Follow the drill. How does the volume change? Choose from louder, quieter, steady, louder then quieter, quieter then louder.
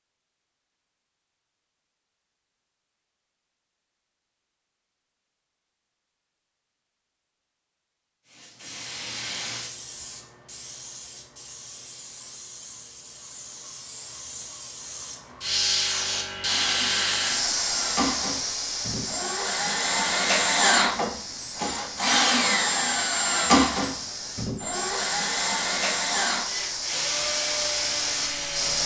louder then quieter.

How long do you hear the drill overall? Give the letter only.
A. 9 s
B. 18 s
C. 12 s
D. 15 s
C.